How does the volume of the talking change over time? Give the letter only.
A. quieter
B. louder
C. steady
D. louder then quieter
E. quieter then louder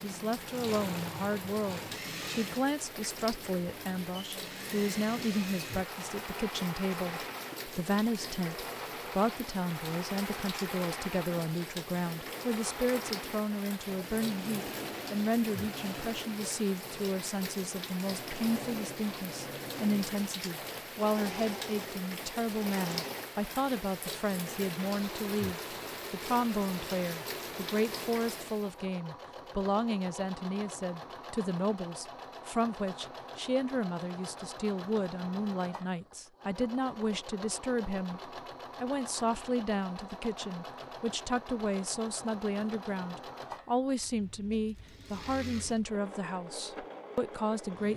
C.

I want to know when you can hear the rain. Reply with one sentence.
The rain can be heard from 0.0 to 28.8 s.